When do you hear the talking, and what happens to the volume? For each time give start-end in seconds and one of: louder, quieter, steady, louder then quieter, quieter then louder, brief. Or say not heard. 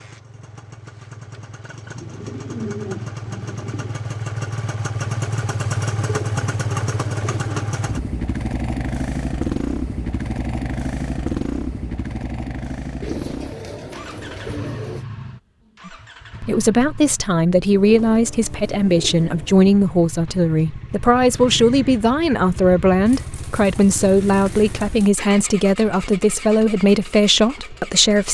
15.8-28.2 steady.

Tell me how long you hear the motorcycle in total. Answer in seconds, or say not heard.
28 s.